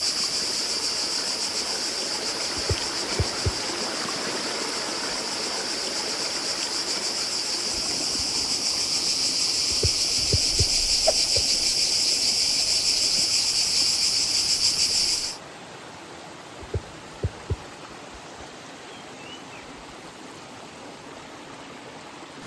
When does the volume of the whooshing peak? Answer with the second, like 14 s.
11 s.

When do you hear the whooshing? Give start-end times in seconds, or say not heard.
2.5-3.6, 9.7-11.4, 16.6-17.6.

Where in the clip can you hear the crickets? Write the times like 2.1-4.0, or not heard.
0.0-15.4.